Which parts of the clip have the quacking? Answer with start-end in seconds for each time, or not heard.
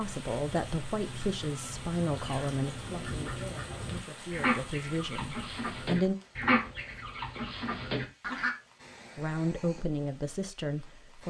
0.0-8.6.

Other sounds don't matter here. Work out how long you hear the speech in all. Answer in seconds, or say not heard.
8 s.